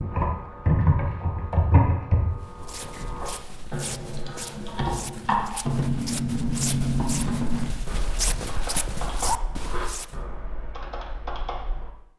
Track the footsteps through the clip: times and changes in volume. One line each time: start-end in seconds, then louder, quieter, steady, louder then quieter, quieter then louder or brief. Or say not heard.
2.4-10.2 louder.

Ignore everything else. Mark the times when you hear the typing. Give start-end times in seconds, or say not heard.
0.0-11.9.